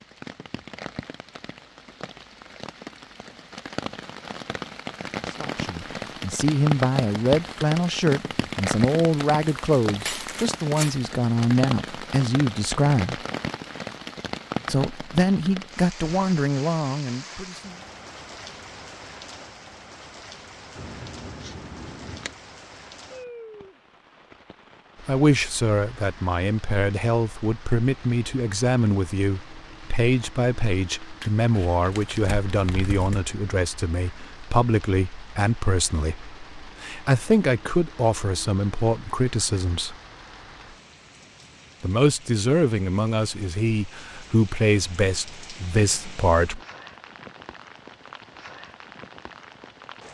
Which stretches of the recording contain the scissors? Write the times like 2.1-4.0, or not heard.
20.8-22.4.